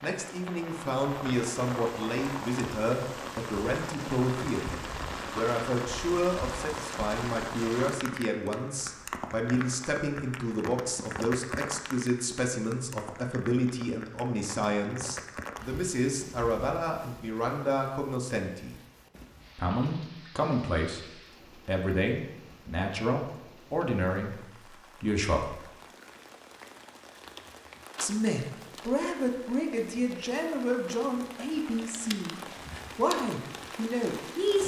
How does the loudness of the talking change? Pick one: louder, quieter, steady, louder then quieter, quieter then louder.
steady.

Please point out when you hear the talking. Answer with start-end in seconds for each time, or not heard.
0.0-18.8, 19.6-25.7, 28.0-34.6.